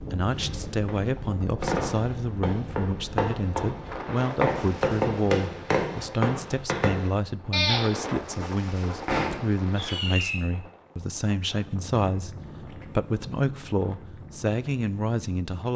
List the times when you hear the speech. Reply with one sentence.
You can hear the speech from 0.1 to 15.7 s.